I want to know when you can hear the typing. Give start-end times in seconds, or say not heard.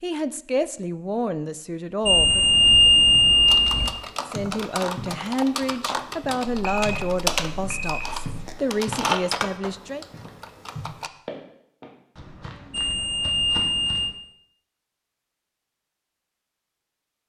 3.5-11.1.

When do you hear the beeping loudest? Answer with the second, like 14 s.
3 s.